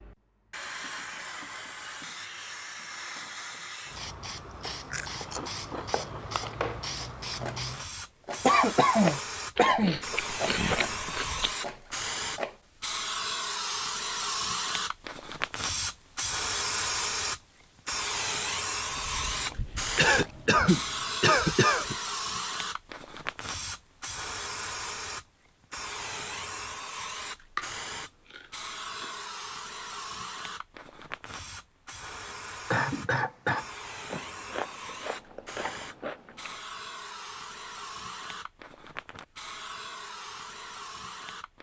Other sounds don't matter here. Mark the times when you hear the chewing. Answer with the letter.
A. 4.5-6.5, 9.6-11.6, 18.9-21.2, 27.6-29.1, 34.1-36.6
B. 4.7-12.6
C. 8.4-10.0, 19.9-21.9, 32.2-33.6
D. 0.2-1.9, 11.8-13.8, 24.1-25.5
A.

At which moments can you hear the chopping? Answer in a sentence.
The chopping can be heard from 4.7 to 12.6 s.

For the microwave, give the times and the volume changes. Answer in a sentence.
You can't hear the microwave here.